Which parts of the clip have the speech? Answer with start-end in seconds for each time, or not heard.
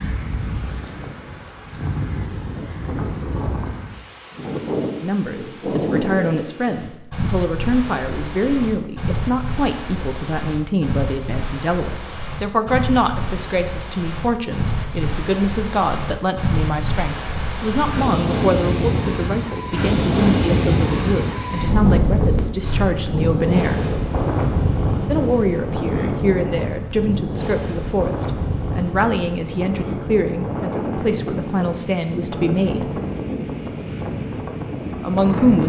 5.0-23.8, 25.1-32.9, 35.0-35.6.